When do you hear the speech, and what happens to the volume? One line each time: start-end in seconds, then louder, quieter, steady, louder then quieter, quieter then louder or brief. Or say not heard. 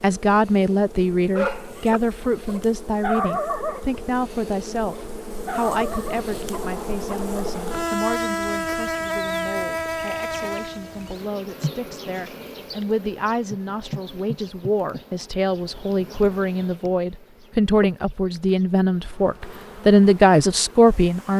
0.0-21.3 quieter then louder.